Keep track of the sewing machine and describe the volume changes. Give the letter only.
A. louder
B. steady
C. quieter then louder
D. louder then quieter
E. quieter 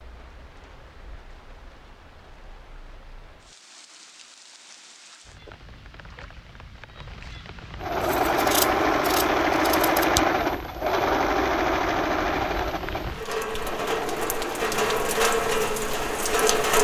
E.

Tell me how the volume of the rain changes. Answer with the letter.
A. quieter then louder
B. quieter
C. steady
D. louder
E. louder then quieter
D.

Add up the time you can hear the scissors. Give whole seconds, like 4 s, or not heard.
2 s.